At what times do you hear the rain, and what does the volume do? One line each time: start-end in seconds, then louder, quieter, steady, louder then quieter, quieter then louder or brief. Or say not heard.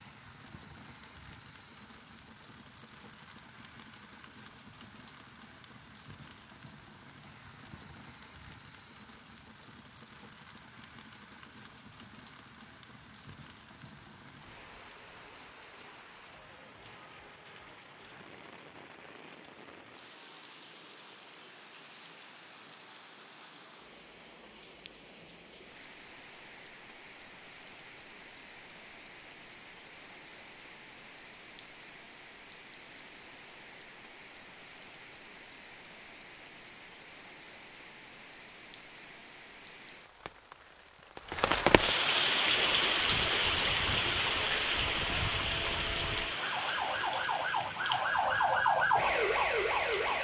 0.0-50.1 louder.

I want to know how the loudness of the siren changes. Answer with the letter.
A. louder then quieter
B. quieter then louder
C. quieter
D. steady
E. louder
E.